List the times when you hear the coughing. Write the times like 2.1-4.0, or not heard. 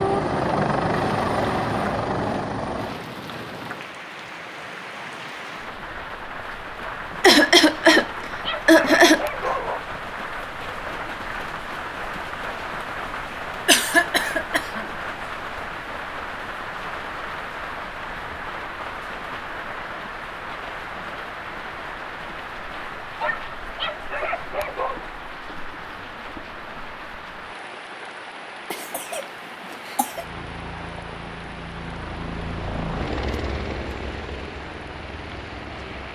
7.2-9.2, 13.7-14.8, 28.7-30.2.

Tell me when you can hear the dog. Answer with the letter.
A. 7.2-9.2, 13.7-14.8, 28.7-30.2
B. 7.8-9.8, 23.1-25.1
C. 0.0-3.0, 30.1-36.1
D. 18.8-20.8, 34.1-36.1
B.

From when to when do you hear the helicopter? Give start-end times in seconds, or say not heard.
0.0-3.0, 30.1-36.1.